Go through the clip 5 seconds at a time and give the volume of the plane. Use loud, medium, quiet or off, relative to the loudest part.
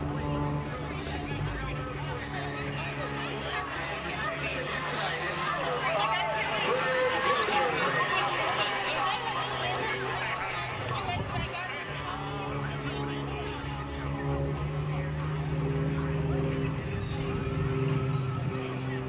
medium, quiet, medium, loud.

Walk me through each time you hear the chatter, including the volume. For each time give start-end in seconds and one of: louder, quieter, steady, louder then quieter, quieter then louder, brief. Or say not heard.
0.0-19.0 louder then quieter.